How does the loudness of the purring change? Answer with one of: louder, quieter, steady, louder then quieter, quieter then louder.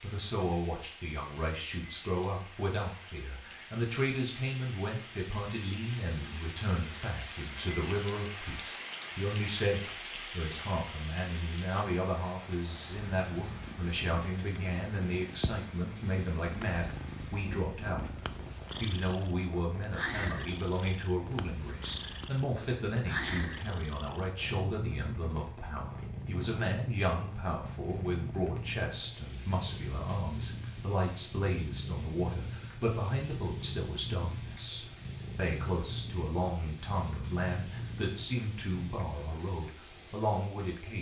steady.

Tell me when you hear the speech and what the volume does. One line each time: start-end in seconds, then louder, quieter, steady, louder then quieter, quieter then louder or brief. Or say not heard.
0.0-40.9 steady.